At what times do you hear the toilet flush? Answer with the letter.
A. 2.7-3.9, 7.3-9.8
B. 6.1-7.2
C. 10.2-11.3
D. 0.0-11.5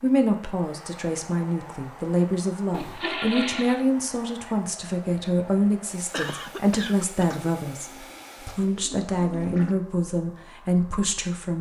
A.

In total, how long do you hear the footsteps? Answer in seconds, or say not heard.
not heard.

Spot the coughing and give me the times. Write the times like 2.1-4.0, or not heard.
6.1-7.2.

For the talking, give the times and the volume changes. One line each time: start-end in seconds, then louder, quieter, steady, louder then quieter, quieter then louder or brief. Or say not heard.
0.0-11.5 steady.